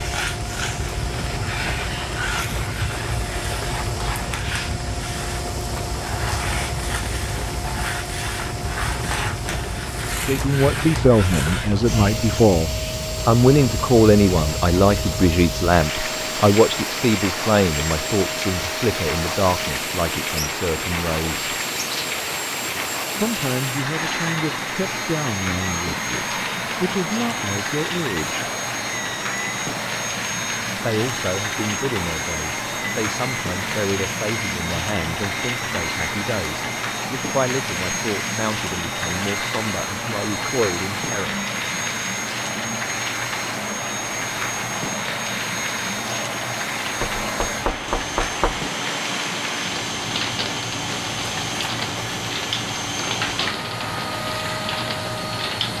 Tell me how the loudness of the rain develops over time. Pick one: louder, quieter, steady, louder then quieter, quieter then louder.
steady.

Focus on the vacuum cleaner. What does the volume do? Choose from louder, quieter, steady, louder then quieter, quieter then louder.
steady.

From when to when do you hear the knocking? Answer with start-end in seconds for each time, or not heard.
47.0-48.7.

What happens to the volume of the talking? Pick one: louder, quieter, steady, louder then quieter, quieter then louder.
quieter.